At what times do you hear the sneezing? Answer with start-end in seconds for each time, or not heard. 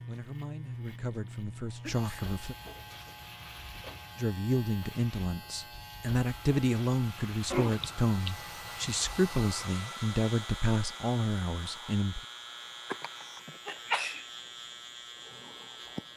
1.8-2.4, 7.5-8.3, 12.9-14.2.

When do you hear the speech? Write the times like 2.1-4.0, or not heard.
0.1-2.5, 4.2-12.2.